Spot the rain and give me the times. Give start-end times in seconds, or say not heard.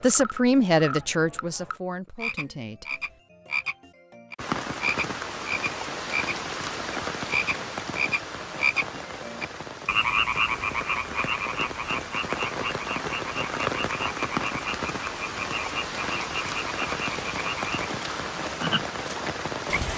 4.3-19.9.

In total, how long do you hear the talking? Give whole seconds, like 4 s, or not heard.
3 s.